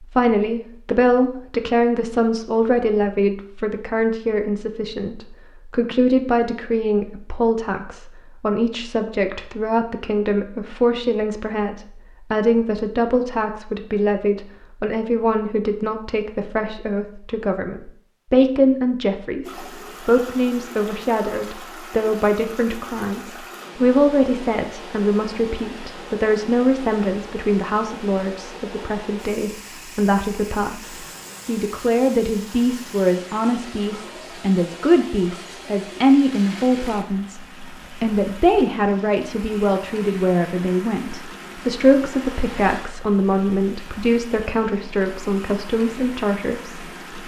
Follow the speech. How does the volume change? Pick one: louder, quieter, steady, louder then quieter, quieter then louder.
steady.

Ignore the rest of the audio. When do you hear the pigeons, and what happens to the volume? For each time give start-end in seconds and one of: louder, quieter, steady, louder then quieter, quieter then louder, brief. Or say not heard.
not heard.